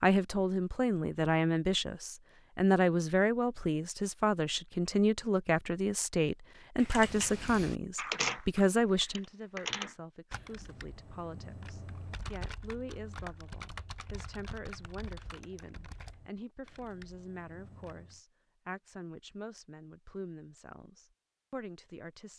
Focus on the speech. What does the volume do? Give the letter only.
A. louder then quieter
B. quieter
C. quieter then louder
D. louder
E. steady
B.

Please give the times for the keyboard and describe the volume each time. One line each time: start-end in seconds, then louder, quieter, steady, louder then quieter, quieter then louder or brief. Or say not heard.
6.8-18.2 quieter.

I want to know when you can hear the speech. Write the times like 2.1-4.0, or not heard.
0.0-22.3.